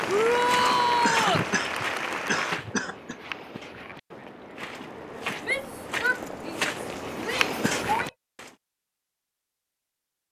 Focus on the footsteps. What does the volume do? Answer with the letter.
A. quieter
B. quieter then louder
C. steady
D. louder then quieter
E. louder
B.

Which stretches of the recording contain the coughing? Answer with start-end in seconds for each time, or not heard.
0.6-3.1, 7.2-7.9.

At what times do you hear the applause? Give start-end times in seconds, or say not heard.
0.0-2.6.